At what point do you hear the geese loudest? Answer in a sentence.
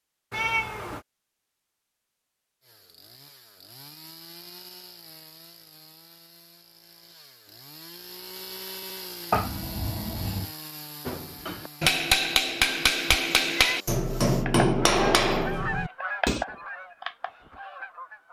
The loudest moment of the geese is at 16 seconds.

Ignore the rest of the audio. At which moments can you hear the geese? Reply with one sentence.
You can hear the geese from 14.4 to 18.2 s.